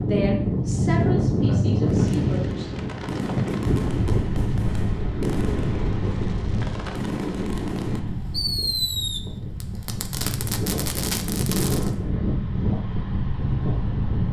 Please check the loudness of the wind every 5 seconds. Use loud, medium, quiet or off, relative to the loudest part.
loud, medium, loud.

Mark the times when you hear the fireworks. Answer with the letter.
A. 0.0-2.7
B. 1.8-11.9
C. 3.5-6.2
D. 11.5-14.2
B.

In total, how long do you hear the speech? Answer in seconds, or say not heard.
3 s.